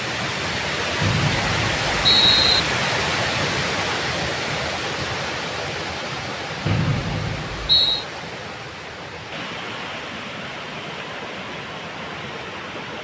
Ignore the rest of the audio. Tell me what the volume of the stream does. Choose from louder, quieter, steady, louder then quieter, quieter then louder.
quieter.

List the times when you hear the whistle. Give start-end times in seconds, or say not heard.
1.0-2.6, 6.7-8.1.